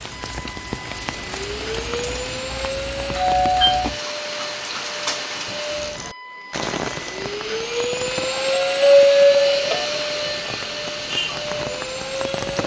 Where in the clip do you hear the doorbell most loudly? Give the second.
9 s.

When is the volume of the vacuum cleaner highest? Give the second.
9 s.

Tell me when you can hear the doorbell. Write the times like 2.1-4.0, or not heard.
3.1-3.9, 8.1-9.8.